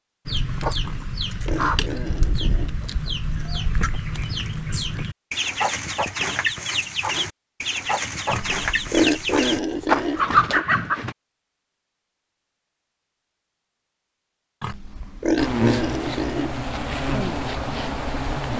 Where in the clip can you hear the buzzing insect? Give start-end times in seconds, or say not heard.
15.3-18.5.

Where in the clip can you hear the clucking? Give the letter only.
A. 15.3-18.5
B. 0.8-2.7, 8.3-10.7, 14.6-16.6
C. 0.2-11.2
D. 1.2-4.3
C.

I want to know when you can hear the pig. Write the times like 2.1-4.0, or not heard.
0.8-2.7, 8.3-10.7, 14.6-16.6.